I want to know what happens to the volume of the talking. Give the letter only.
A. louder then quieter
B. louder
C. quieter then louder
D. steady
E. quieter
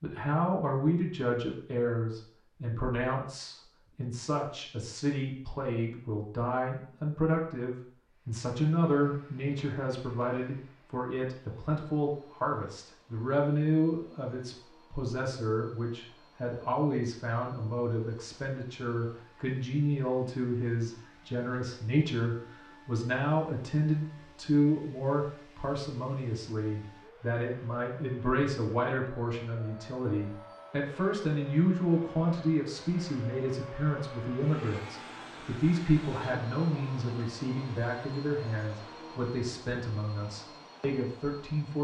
D.